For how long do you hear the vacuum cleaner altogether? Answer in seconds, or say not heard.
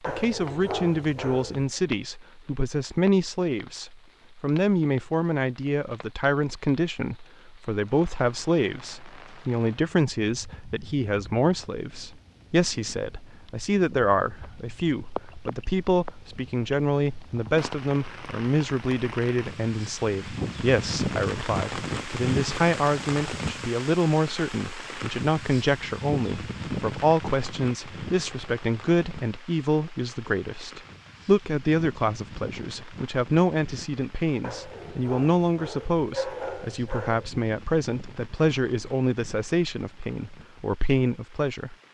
not heard.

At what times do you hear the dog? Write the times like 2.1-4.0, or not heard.
0.0-1.8, 34.4-37.4.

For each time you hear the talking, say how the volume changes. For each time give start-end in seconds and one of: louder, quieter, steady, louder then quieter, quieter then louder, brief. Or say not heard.
0.1-41.8 steady.